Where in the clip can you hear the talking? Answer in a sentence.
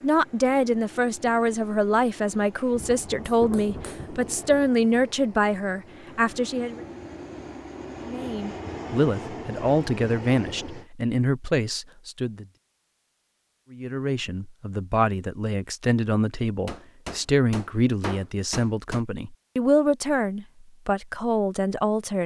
The talking can be heard from 0.0 to 6.8 s, from 8.0 to 12.4 s and from 13.7 to 22.2 s.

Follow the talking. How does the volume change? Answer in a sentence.
The loudness of the talking stays about the same.